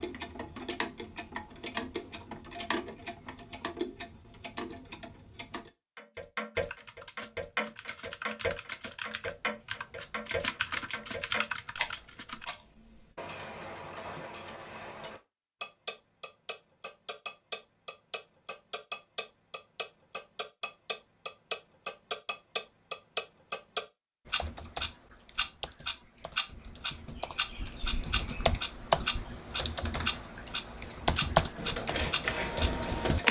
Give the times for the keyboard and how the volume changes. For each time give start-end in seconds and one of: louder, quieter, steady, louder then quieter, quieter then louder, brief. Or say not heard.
6.5-12.4 louder
24.2-33.2 louder.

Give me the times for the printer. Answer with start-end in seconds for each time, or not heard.
31.6-33.2.